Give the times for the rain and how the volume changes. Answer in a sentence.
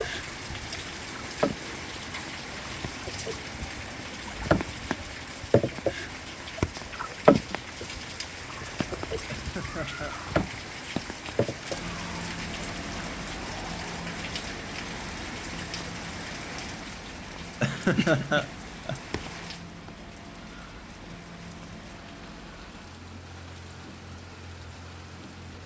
The rain can be heard from 0.0 to 25.6 s, getting quieter.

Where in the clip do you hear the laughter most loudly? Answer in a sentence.
The volume of the laughter peaks at 18 seconds.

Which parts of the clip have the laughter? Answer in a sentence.
You can hear the laughter from 9.3 to 10.2 s and from 17.6 to 19.0 s.